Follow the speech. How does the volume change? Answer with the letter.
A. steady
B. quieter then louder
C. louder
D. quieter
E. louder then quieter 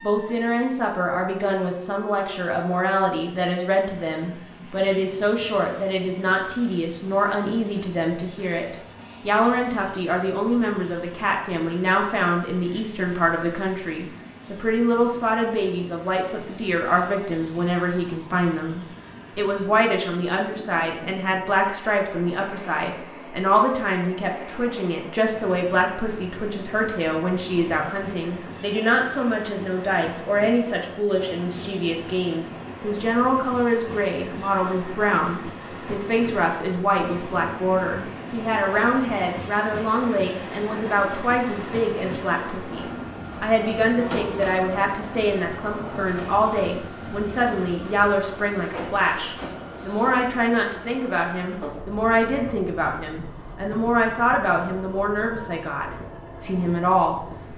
A.